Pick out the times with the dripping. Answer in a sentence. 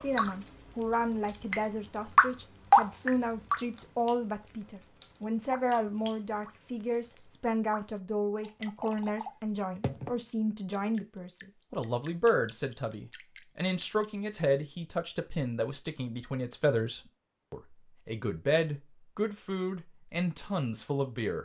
You can hear the dripping from 0.0 to 14.1 s.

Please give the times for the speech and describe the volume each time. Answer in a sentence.
You can hear the speech from 0.0 to 21.4 s, at a steady volume.